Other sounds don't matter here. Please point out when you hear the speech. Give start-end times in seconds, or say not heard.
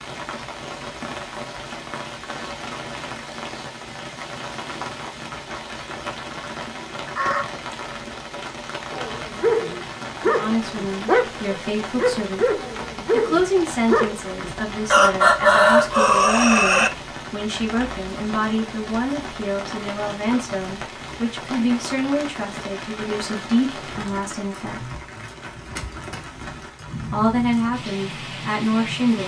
10.2-24.9, 27.1-29.2.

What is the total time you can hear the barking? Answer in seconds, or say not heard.
6 s.